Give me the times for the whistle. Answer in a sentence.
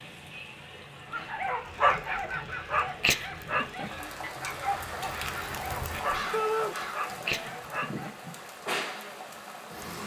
You can't hear the whistle here.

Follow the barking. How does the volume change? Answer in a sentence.
The volume of the barking goes down.